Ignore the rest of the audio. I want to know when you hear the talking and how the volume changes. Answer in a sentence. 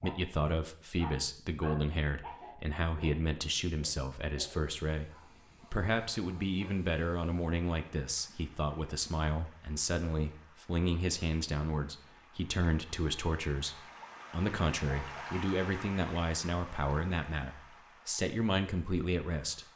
The talking can be heard from 0.0 to 19.6 s, at a steady volume.